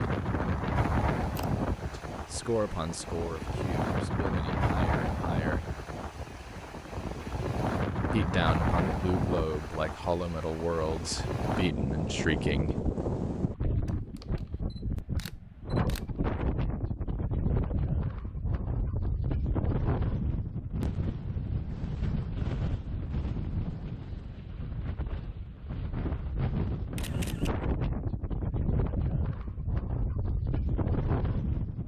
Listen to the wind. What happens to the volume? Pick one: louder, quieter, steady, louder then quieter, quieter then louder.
steady.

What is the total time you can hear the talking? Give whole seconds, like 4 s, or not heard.
9 s.